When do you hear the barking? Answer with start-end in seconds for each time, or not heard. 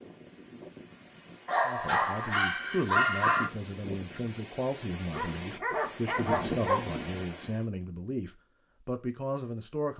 1.4-3.5, 5.1-7.0.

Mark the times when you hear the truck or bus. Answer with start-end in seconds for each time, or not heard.
not heard.